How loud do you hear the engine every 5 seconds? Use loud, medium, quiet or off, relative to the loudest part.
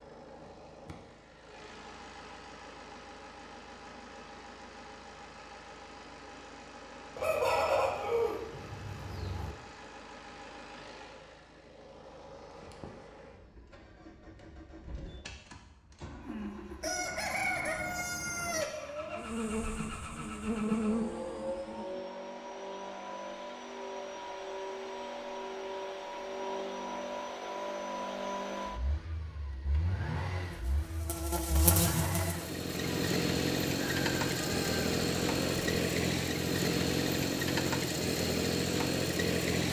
quiet, quiet, quiet, quiet, medium, medium, loud, loud.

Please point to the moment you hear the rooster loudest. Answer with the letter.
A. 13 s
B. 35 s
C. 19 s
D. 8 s
D.